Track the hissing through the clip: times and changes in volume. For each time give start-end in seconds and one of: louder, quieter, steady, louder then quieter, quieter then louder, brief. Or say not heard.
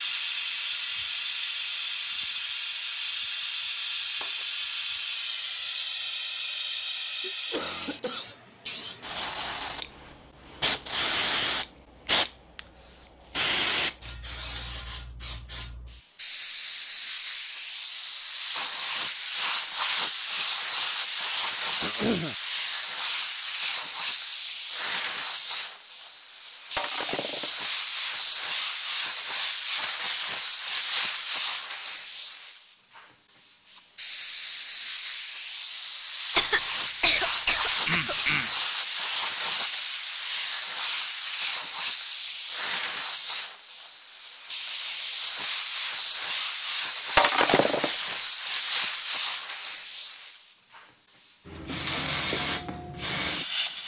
0.0-53.8 steady.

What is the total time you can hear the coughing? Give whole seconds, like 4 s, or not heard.
4 s.